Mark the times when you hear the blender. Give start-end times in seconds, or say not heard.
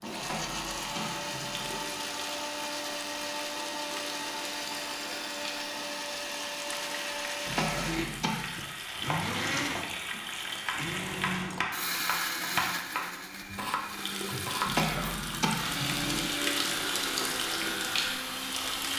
0.0-18.9.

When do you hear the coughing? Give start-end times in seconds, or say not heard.
0.1-1.9, 7.5-8.7, 14.7-16.3.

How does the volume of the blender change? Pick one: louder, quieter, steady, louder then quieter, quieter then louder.
steady.